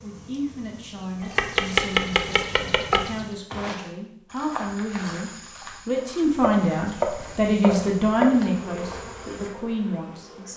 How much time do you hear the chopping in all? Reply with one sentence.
You can hear the chopping for 4 seconds altogether.